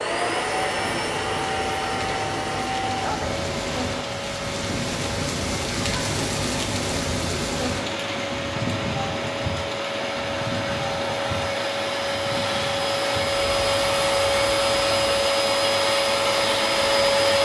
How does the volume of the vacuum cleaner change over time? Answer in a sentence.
The volume of the vacuum cleaner goes down, then up.